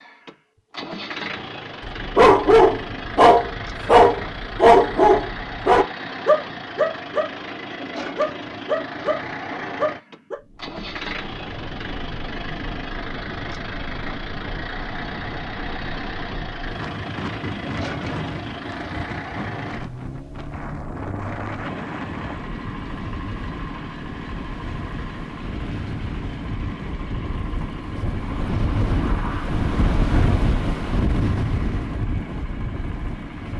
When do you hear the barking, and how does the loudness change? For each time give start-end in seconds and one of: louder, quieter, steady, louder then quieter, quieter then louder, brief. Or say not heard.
1.9-10.3 quieter.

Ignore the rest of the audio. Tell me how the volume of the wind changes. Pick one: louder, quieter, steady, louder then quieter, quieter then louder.
louder.